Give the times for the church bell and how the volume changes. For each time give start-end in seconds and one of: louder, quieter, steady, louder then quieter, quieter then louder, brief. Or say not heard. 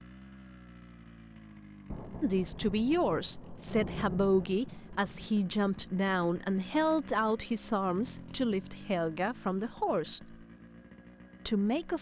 not heard.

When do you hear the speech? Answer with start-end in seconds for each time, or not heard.
2.2-10.3, 11.4-11.9.